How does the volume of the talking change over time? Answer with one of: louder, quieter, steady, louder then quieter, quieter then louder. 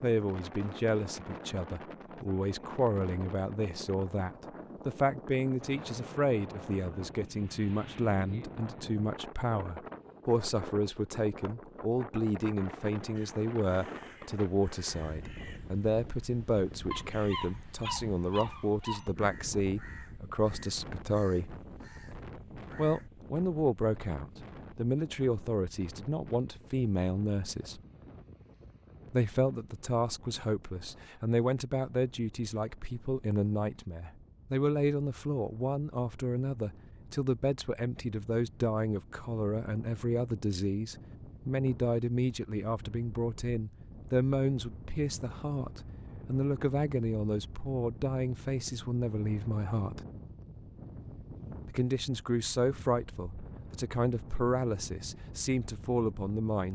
steady.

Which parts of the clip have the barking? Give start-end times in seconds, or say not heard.
16.9-19.1.